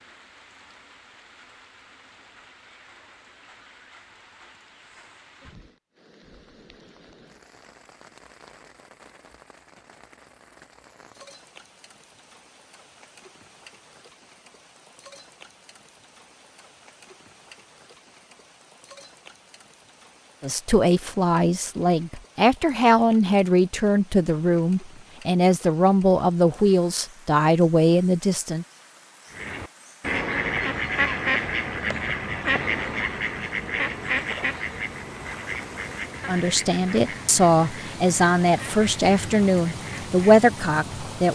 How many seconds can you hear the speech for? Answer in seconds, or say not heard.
13 s.